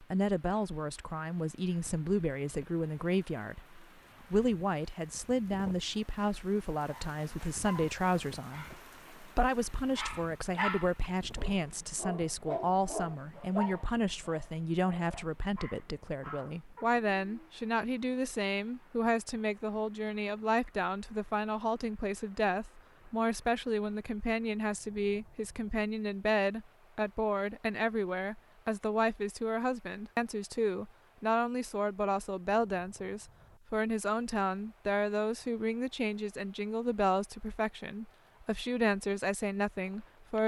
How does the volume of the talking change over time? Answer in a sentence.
The volume of the talking stays about the same.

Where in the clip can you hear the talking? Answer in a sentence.
You can hear the talking from 0.0 to 40.4 s.